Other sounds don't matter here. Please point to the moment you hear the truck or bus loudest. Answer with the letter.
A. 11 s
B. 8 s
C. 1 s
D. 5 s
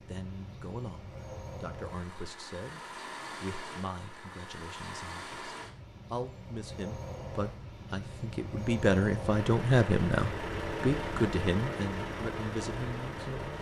A.